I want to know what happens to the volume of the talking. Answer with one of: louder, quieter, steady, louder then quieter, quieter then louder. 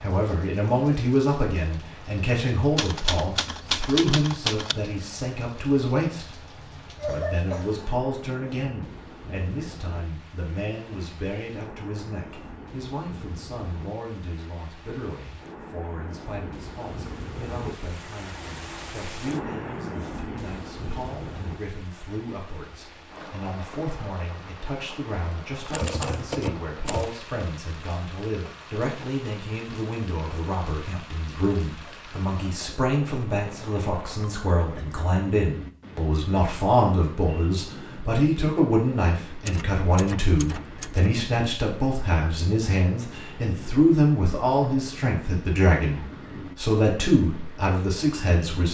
quieter then louder.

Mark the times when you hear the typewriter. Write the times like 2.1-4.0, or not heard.
2.8-4.8, 25.7-27.1, 39.5-41.2.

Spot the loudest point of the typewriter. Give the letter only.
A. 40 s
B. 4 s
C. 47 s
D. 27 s
B.